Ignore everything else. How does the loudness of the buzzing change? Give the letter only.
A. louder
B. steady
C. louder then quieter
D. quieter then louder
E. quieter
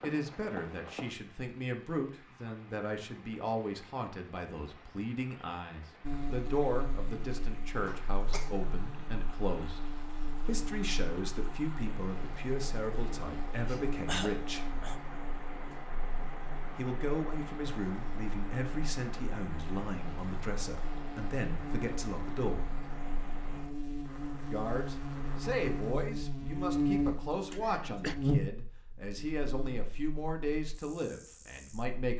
A.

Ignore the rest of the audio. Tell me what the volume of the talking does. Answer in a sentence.
The volume of the talking stays about the same.